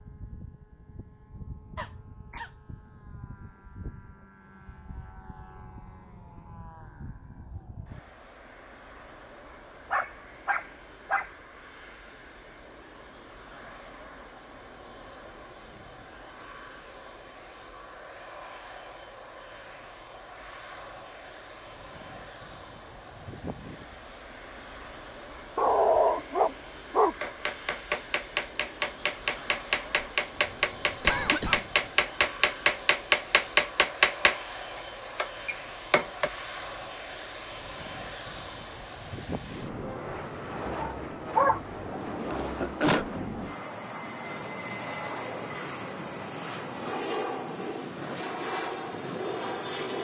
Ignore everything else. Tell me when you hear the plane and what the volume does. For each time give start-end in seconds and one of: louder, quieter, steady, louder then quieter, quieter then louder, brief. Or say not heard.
0.0-49.9 louder.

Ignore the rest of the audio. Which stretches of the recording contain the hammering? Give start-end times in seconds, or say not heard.
27.2-36.3.